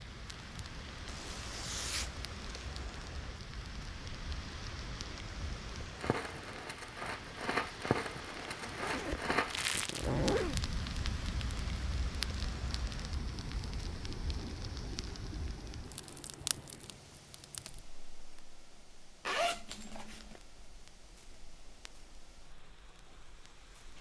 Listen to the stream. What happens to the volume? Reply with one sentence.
The volume of the stream goes down.